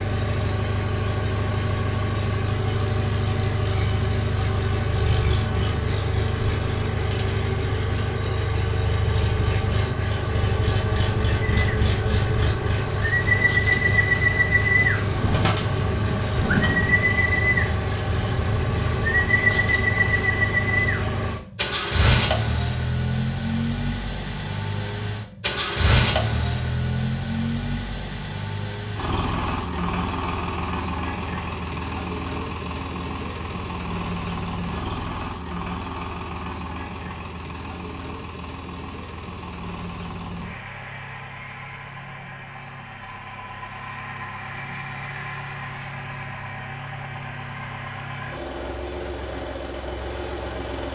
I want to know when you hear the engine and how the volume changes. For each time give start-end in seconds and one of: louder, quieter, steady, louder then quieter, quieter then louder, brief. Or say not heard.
0.0-50.9 quieter.